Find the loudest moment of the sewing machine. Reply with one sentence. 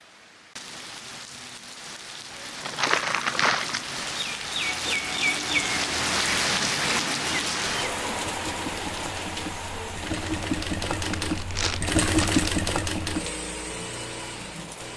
The loudest moment of the sewing machine is at 12 seconds.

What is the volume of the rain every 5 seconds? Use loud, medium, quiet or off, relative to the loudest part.
medium, loud, quiet.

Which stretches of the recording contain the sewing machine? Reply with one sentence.
The sewing machine can be heard from 4.9 to 14.9 s.